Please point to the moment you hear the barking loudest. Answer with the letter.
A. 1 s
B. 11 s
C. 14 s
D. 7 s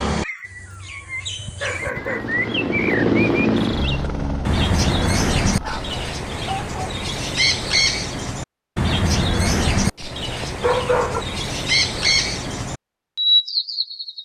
B.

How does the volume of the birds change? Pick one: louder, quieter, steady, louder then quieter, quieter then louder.
louder.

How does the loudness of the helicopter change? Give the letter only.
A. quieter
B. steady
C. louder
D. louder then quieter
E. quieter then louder
D.